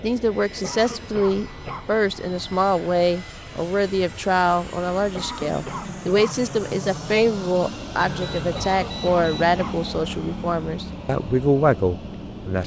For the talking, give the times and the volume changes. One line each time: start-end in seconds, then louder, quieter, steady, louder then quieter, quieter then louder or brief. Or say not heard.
0.0-12.6 steady.